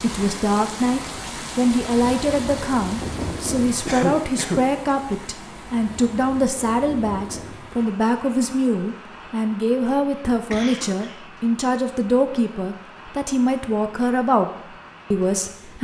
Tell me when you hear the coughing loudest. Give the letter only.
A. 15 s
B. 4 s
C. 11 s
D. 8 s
B.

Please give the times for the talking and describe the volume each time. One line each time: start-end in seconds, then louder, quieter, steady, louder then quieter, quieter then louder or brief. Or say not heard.
0.0-14.5 steady
15.1-15.7 brief.